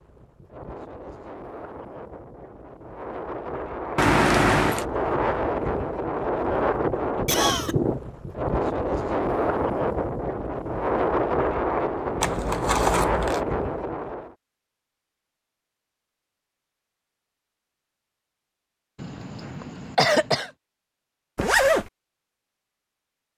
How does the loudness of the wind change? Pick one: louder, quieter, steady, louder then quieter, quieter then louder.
louder.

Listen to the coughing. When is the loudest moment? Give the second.
20 s.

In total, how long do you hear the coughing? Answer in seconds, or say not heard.
2 s.